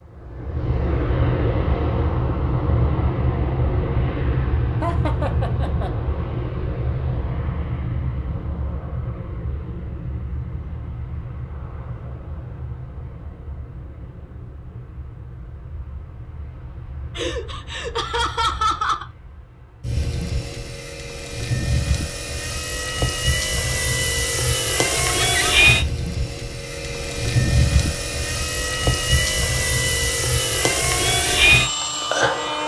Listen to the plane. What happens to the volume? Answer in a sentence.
The loudness of the plane goes down, then up.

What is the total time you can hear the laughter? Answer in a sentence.
The laughter can be heard for 4 seconds in total.